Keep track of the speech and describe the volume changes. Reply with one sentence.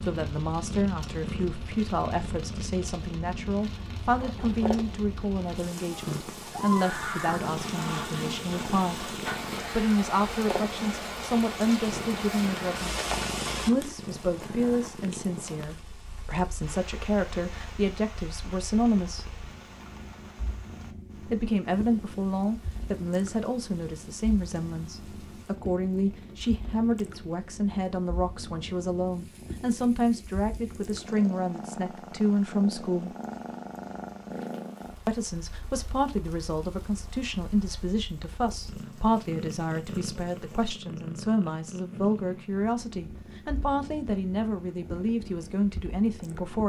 The volume of the speech stays about the same.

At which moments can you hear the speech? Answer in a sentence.
The speech can be heard from 0.0 to 12.9 s, from 13.6 to 19.3 s, from 21.2 to 33.1 s and from 35.0 to 46.6 s.